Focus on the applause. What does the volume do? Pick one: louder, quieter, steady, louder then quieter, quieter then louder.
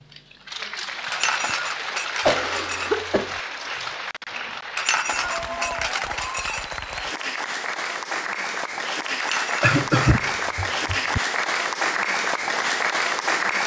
louder.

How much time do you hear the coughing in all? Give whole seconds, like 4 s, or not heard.
3 s.